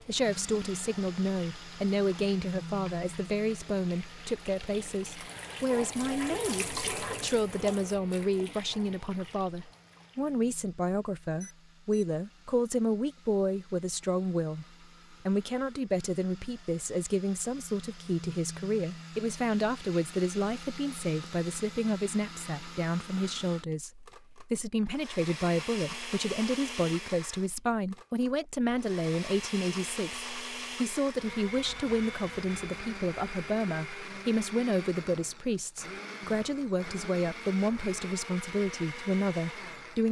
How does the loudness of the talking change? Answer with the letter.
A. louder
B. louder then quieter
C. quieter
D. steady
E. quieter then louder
D.